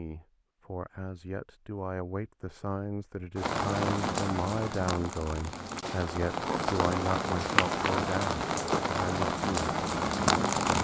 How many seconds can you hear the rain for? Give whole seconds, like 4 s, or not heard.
7 s.